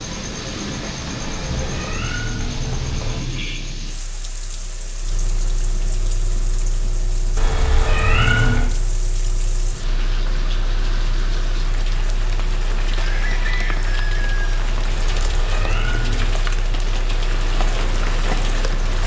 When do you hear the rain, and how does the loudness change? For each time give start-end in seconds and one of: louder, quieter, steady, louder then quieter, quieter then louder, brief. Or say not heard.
0.0-19.0 quieter then louder.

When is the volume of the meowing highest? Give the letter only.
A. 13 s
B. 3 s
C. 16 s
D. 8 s
D.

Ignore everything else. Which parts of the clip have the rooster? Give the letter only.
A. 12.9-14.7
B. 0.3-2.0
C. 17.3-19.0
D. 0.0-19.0
A.